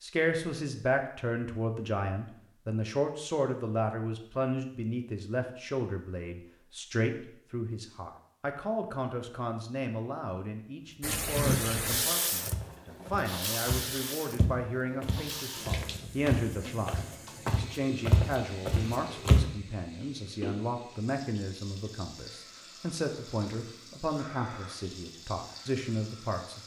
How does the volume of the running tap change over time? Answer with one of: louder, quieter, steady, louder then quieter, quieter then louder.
quieter.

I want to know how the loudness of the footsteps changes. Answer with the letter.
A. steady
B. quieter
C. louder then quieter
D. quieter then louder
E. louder
E.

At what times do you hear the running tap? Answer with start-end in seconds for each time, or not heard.
11.0-26.6.